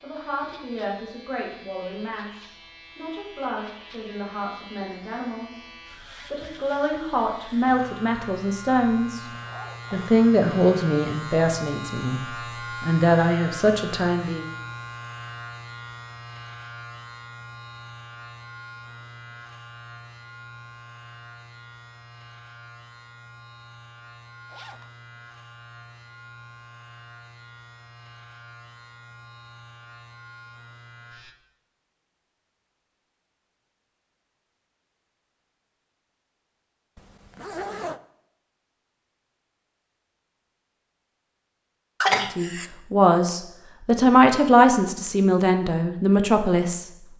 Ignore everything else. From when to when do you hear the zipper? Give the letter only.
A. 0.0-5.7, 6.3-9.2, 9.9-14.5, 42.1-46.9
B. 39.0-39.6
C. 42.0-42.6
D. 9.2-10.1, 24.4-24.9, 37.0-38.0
D.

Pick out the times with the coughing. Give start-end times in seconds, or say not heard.
42.0-42.6.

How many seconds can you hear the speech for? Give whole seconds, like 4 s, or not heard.
18 s.